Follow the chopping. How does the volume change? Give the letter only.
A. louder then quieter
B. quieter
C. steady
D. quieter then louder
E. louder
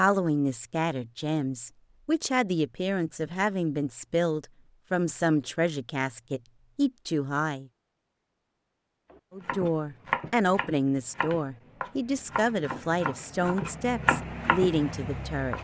D.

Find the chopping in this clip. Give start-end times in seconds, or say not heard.
9.1-15.5.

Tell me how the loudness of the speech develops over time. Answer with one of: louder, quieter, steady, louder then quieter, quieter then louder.
steady.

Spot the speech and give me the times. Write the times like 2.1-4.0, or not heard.
0.0-7.7, 9.3-15.5.